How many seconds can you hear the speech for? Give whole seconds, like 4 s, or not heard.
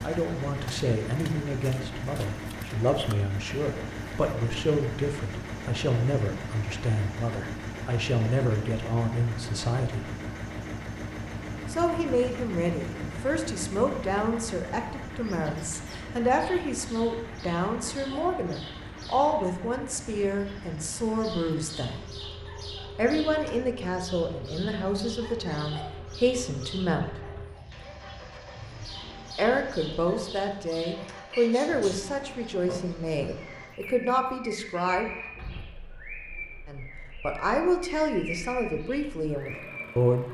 34 s.